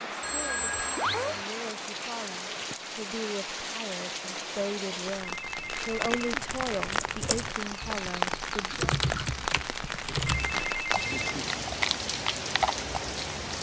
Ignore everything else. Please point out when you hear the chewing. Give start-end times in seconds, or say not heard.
not heard.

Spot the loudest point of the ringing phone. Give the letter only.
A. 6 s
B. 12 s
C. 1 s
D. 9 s
C.